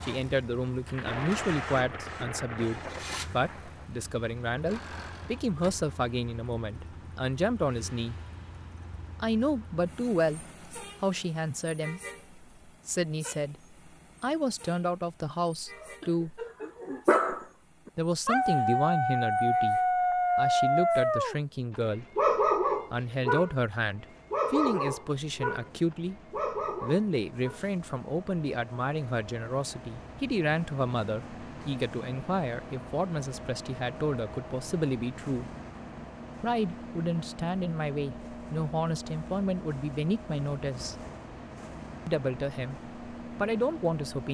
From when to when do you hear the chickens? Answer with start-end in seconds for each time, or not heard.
not heard.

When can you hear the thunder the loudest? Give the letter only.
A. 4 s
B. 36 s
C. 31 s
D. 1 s
D.